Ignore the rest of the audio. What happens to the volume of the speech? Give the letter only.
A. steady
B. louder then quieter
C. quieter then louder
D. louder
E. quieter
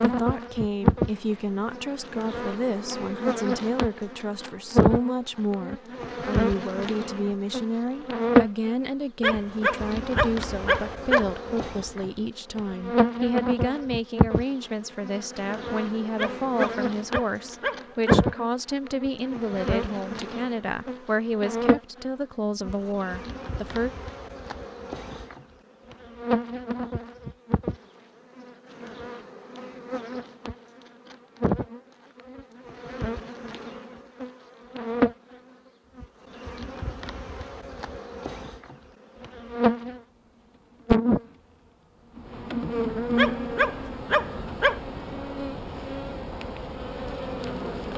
A.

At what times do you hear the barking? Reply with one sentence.
The barking can be heard from 9.2 to 11.3 s, from 16.1 to 18.3 s and from 43.1 to 44.8 s.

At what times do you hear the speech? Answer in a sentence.
You can hear the speech from 0.0 to 23.9 s.